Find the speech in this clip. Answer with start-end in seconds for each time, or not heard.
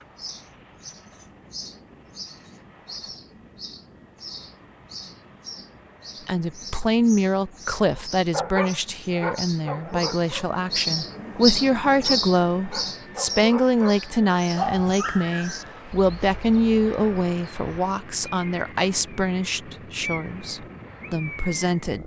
6.2-22.0.